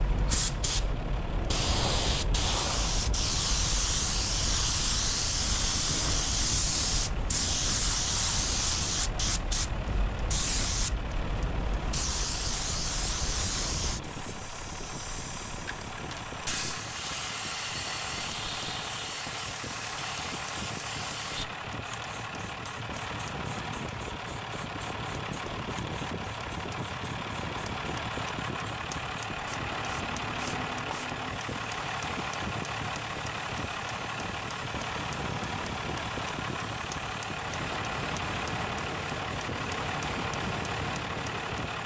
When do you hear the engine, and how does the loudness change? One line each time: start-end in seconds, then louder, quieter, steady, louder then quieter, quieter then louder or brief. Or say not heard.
0.0-41.8 louder.